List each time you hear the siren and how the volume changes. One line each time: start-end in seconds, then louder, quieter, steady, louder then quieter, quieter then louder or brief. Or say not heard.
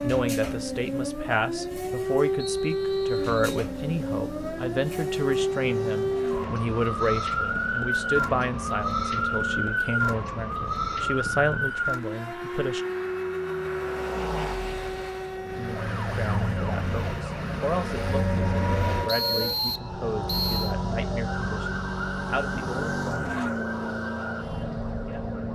0.0-25.5 quieter.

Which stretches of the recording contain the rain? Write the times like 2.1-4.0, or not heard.
not heard.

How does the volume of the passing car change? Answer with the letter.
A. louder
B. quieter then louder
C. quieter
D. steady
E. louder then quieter
A.